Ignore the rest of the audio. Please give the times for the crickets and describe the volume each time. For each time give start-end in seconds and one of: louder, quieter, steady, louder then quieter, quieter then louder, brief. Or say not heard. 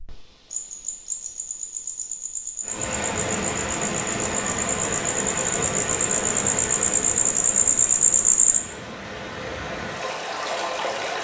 0.0-8.6 louder.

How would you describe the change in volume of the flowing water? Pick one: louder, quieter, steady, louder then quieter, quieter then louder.
quieter then louder.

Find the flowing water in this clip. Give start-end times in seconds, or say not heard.
2.6-11.2.